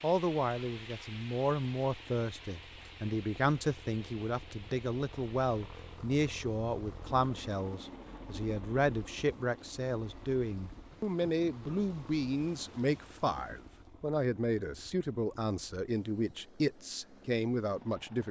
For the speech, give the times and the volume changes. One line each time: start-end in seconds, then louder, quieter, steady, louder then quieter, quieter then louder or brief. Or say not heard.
0.0-18.2 steady.